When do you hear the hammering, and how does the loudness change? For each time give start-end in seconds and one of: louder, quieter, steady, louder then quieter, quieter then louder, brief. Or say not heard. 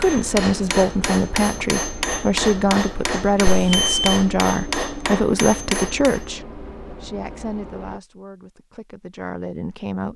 0.0-6.2 steady.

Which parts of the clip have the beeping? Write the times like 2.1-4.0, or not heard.
3.5-4.2.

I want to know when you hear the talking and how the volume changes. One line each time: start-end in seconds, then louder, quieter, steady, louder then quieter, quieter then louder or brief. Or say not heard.
0.0-10.1 quieter.